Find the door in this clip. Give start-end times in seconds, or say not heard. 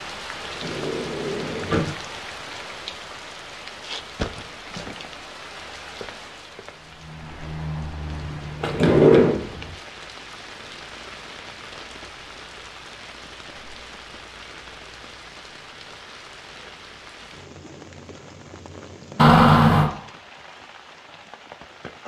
0.5-2.0, 8.6-9.3, 19.1-19.9.